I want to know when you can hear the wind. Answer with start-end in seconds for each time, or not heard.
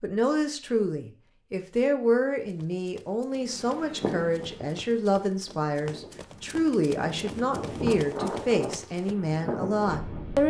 3.4-10.4.